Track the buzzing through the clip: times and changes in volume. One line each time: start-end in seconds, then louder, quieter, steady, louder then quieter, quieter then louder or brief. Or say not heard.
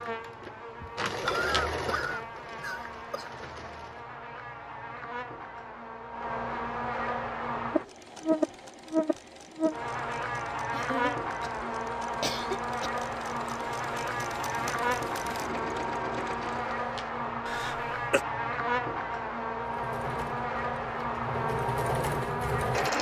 0.0-22.9 louder.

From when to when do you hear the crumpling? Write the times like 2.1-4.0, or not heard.
0.9-1.6, 16.4-17.1.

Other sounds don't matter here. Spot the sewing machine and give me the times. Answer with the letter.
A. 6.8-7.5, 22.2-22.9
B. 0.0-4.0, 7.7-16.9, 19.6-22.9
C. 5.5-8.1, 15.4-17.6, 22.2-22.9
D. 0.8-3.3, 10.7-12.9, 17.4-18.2
B.